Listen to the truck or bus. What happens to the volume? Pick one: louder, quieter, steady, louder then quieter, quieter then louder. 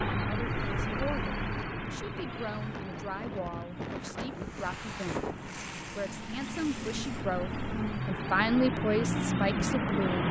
quieter then louder.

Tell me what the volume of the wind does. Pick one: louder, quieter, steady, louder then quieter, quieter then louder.
louder then quieter.